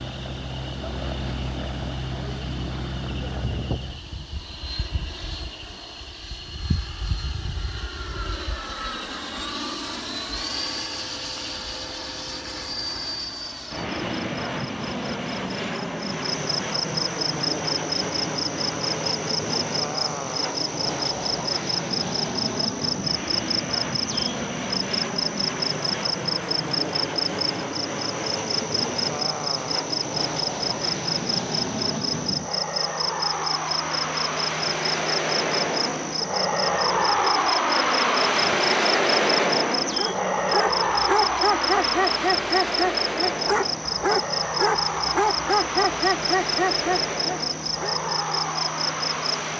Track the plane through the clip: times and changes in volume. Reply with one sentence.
You can hear the plane from 0.0 to 49.5 s, getting louder.